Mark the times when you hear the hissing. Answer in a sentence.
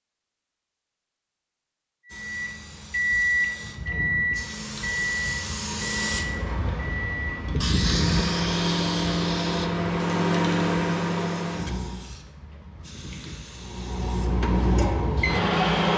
The hissing can be heard from 2.0 to 15.9 s.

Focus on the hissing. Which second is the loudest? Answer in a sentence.
The loudest moment of the hissing is at 8 seconds.